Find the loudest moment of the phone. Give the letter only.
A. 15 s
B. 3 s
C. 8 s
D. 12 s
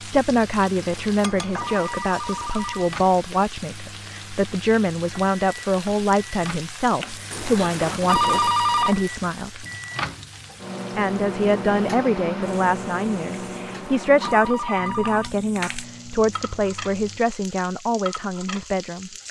C.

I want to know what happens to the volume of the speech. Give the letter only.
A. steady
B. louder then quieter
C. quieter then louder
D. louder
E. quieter
A.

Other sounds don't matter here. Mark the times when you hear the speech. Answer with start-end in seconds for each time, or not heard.
0.0-9.7, 10.9-19.1.